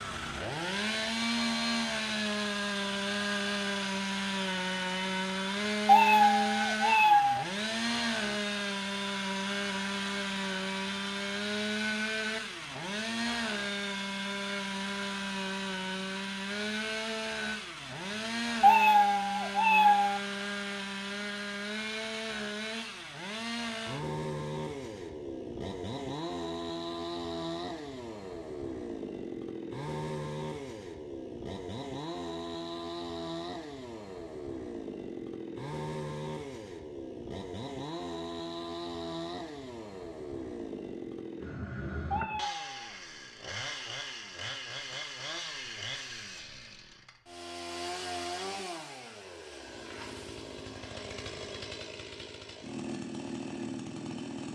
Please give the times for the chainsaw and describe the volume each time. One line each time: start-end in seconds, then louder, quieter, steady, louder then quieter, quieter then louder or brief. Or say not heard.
0.0-54.5 quieter.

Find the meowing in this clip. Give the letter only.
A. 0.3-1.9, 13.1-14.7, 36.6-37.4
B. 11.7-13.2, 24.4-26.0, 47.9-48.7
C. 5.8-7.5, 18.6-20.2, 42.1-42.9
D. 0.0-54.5
C.